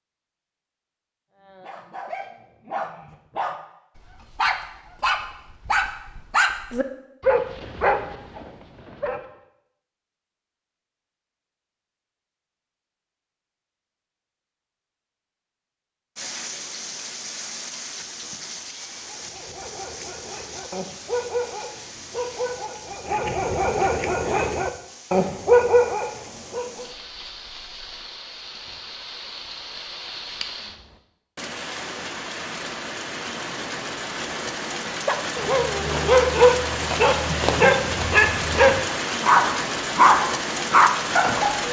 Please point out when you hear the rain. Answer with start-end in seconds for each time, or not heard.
16.1-41.6.